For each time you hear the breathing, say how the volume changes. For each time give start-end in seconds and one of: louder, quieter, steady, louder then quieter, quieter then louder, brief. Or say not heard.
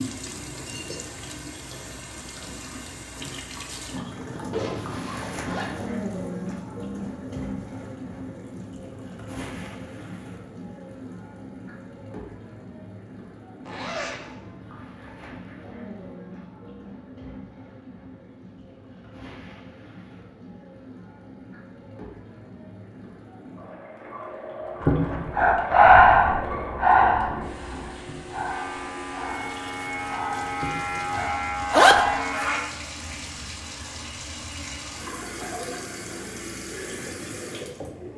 24.8-32.2 quieter.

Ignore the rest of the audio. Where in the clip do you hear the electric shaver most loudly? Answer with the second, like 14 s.
32 s.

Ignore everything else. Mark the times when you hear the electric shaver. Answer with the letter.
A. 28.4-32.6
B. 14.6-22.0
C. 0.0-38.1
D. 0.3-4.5
A.